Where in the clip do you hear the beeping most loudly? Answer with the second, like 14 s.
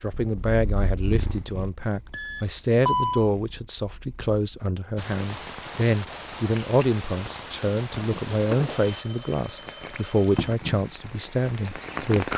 3 s.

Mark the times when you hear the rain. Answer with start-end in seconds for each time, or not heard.
5.0-12.3.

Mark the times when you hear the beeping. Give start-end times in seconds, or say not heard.
2.1-3.3, 8.8-10.4.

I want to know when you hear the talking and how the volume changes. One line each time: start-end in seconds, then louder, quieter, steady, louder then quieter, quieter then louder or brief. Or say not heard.
0.0-12.3 steady.